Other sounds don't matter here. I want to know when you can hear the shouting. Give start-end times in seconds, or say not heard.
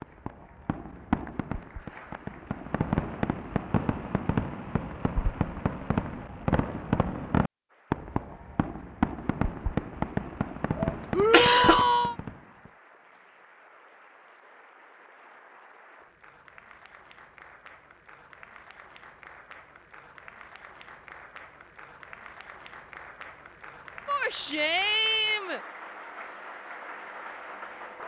11.1-12.2, 24.1-25.6.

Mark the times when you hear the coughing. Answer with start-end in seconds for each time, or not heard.
10.8-11.8.